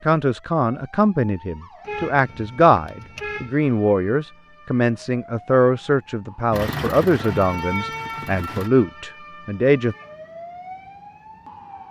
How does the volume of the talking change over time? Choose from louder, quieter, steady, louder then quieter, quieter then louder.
steady.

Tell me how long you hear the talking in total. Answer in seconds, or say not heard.
10 s.